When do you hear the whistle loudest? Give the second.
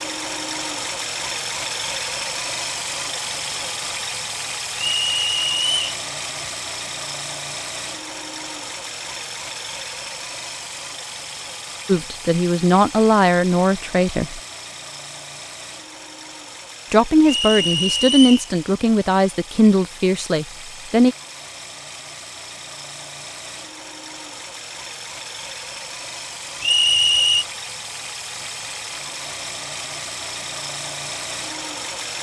27 s.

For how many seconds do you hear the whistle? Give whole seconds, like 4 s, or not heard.
3 s.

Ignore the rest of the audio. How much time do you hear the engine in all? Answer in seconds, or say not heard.
32 s.